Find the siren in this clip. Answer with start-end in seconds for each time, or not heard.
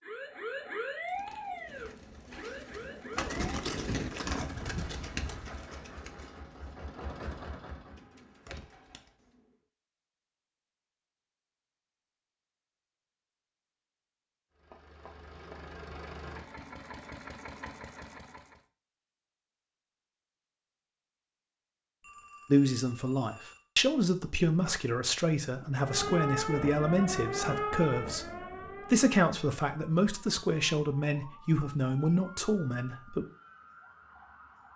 0.0-3.4, 25.8-34.7.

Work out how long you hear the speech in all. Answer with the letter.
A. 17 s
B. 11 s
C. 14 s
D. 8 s
B.